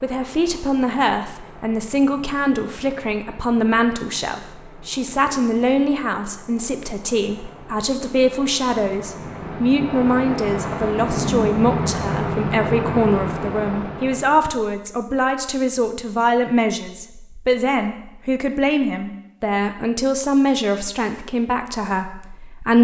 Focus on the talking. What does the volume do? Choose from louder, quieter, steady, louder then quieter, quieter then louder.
steady.